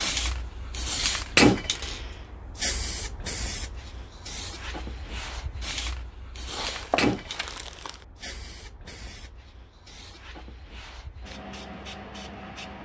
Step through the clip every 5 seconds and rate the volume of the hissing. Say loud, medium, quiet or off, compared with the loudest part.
loud, medium, quiet.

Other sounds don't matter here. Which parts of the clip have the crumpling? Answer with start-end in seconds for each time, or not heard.
6.5-8.1.